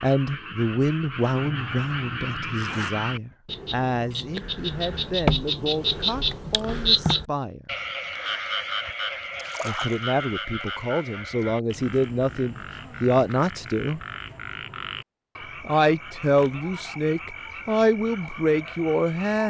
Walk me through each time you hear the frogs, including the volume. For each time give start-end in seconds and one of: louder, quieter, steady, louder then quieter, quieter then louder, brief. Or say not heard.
0.0-19.4 louder then quieter.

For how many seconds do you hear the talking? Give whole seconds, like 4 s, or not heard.
16 s.